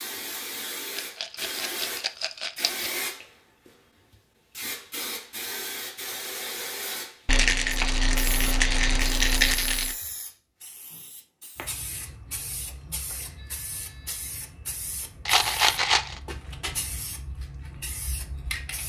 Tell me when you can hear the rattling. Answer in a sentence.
You can hear the rattling from 0.9 to 2.9 s, from 7.2 to 9.9 s and from 15.2 to 16.2 s.